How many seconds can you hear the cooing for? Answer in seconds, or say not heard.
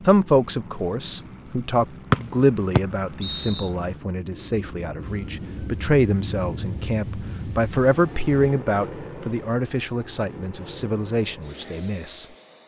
not heard.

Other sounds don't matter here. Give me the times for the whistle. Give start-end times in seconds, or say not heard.
2.1-3.7.